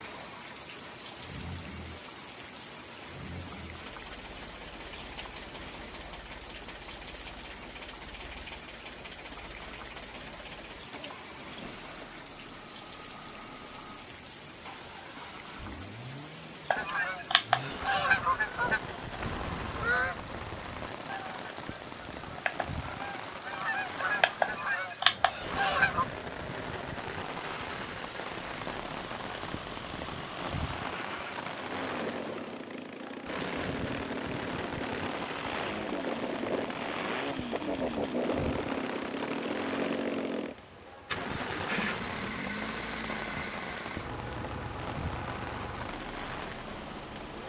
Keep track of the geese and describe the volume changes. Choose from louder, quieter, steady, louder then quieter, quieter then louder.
quieter then louder.